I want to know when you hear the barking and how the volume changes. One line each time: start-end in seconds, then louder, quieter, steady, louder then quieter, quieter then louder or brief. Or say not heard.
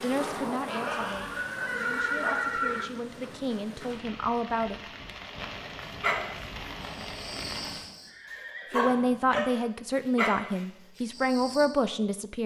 0.0-2.4 brief
5.8-11.7 louder then quieter.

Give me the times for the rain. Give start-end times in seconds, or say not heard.
0.0-8.0.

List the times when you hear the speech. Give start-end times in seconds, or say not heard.
0.0-4.8, 8.7-12.4.